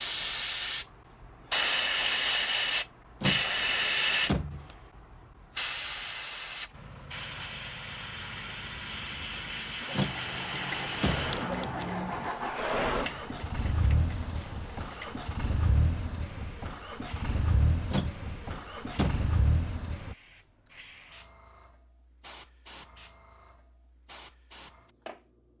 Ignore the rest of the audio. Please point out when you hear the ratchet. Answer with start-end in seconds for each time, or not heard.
9.8-15.3.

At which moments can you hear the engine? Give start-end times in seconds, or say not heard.
6.7-20.1.